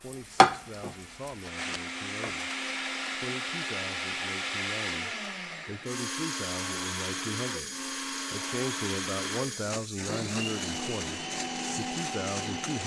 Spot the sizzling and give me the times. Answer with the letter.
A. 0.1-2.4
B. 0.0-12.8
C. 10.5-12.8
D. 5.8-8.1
A.